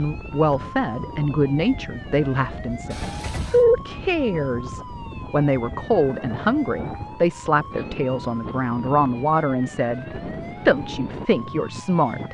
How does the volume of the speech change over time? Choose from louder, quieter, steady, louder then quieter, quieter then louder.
steady.